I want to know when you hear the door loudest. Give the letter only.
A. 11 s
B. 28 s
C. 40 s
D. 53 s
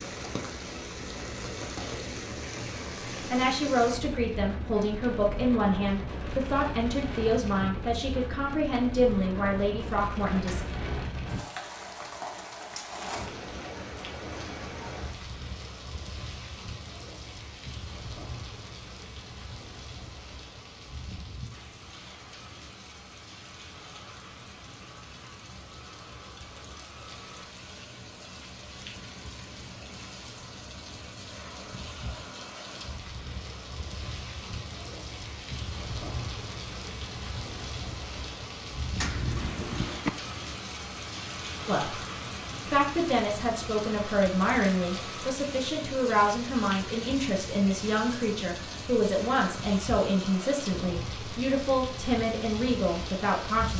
C.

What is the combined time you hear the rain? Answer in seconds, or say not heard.
54 s.